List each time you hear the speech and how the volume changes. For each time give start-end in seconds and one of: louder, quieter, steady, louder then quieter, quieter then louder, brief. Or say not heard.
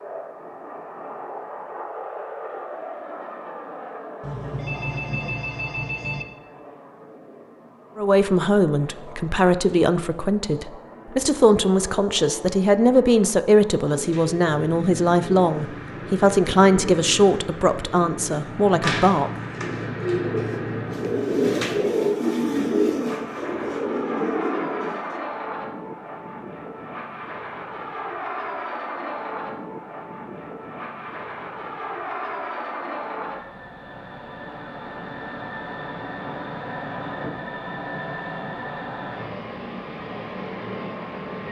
8.0-19.3 steady.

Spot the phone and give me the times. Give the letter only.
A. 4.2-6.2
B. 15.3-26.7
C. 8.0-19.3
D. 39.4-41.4
A.